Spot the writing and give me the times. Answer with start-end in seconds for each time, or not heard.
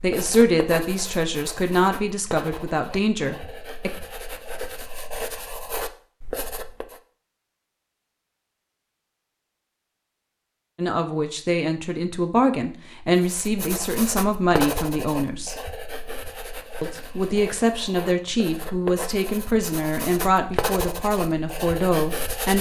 0.0-7.0, 13.2-22.5.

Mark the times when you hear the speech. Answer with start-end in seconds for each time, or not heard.
0.0-3.9, 10.8-15.6, 16.8-22.5.